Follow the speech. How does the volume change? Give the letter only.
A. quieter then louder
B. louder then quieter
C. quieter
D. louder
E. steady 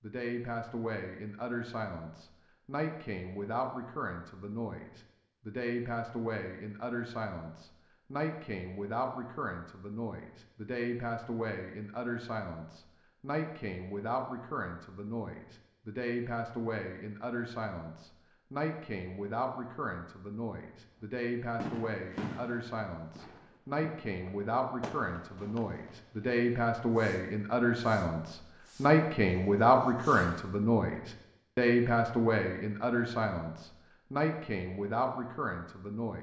D.